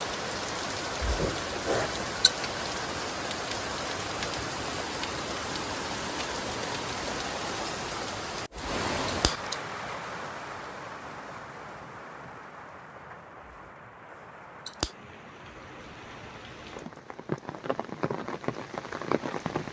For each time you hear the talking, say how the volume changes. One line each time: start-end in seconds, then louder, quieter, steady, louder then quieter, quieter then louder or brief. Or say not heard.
not heard.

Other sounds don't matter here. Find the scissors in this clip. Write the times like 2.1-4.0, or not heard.
1.0-2.3, 9.1-9.6, 13.4-14.9.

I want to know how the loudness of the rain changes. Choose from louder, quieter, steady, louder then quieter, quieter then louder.
quieter then louder.